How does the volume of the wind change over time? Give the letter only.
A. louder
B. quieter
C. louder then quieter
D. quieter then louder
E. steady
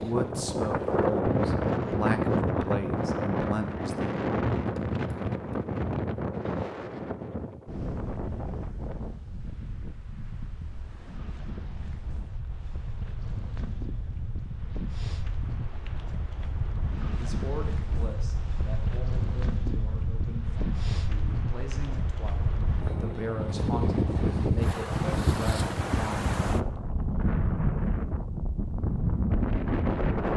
D.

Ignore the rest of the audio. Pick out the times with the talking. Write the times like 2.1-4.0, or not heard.
0.0-4.2, 17.1-26.6.